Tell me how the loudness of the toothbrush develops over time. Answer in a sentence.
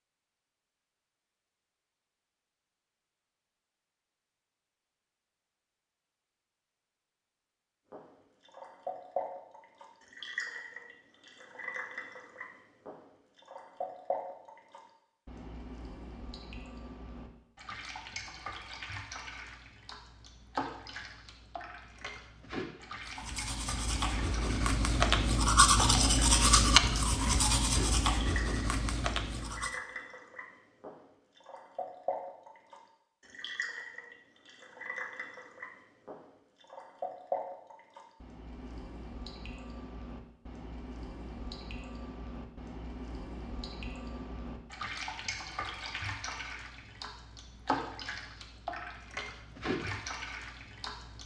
The volume of the toothbrush goes up, then down.